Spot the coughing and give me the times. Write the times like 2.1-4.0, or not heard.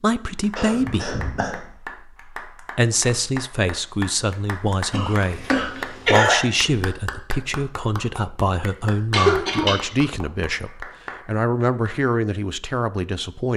0.6-1.6, 4.9-6.4, 9.1-9.9.